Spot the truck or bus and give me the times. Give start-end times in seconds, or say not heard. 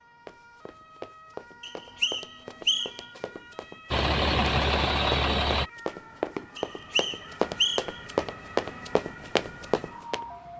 3.9-5.7.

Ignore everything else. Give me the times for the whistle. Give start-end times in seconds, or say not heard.
1.6-3.0, 6.5-8.0.